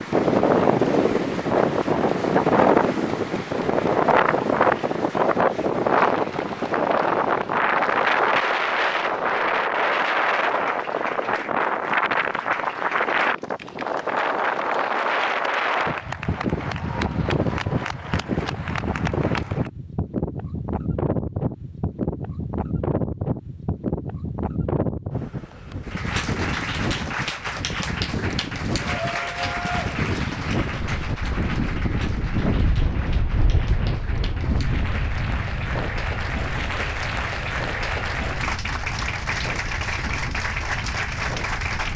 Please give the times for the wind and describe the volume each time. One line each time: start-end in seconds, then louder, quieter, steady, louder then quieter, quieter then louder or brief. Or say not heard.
0.0-41.9 quieter.